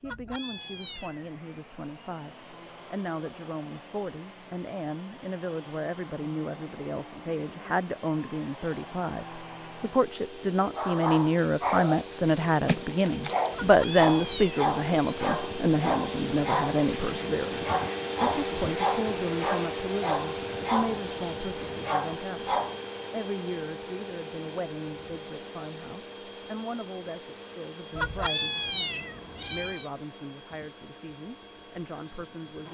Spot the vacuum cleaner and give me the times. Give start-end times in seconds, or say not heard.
0.2-32.6.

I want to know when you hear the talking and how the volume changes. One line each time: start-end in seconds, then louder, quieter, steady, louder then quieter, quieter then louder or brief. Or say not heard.
0.0-32.6 louder then quieter.